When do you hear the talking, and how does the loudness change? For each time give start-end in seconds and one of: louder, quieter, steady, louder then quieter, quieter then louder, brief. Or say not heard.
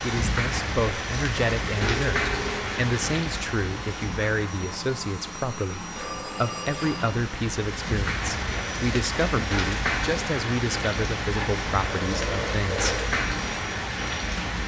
0.0-12.9 steady.